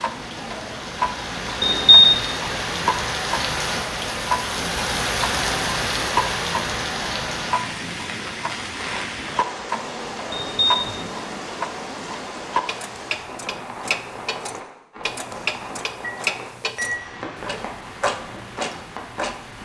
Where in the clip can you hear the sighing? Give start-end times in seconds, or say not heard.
not heard.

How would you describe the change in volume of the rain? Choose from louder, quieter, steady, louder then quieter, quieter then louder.
quieter.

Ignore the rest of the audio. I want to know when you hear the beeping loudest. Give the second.
2 s.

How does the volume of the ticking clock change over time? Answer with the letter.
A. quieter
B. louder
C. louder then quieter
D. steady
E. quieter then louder
D.